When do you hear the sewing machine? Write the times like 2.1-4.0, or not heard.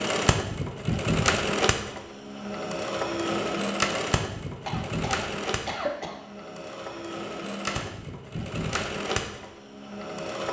0.0-10.4.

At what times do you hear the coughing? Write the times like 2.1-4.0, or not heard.
4.7-6.2.